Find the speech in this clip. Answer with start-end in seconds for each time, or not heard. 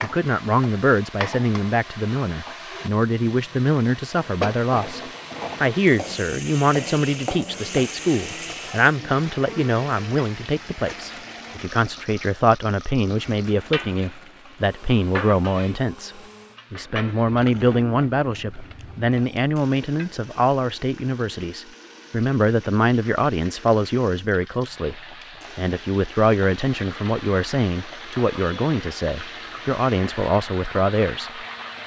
0.0-5.0, 5.6-31.8.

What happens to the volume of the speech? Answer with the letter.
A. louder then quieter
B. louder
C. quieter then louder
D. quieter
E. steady
E.